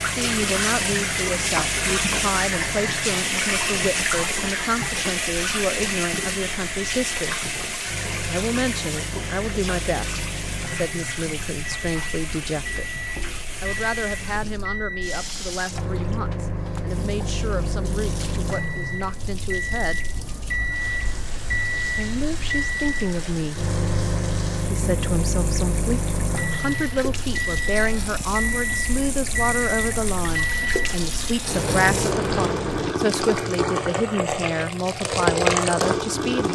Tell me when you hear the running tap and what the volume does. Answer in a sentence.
The running tap can be heard from 0.0 to 36.4 s, getting quieter then louder.